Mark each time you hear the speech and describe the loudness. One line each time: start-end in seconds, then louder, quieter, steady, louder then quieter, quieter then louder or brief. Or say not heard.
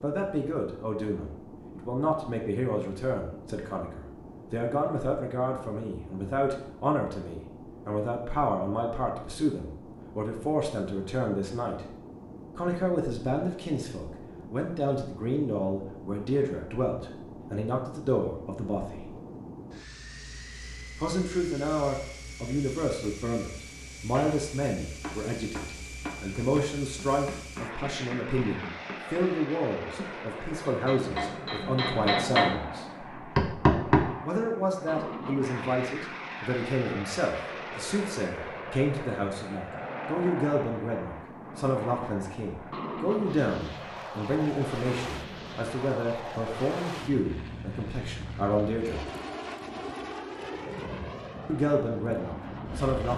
0.0-11.8 steady
12.6-19.1 steady
20.9-32.9 steady
34.2-49.0 steady
51.5-53.1 brief.